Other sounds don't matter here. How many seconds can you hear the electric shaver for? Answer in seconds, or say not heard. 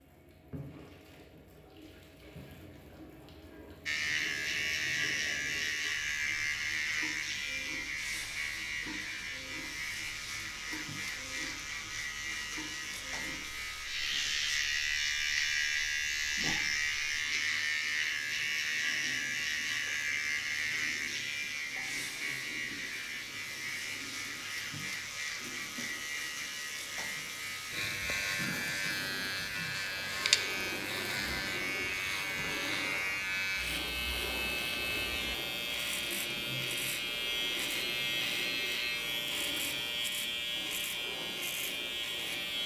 39 s.